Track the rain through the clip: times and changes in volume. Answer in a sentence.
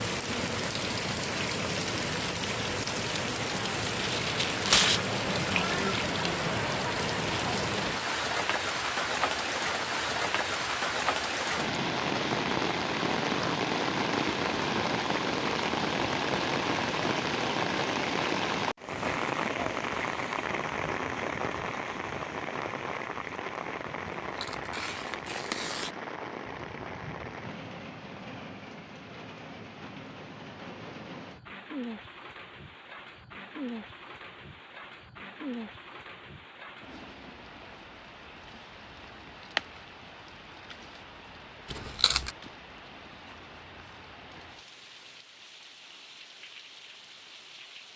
You can hear the rain from 0.0 to 47.9 s, getting quieter.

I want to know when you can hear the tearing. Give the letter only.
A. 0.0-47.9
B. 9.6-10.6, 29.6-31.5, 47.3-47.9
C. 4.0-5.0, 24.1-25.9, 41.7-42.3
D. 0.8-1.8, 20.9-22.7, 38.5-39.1
C.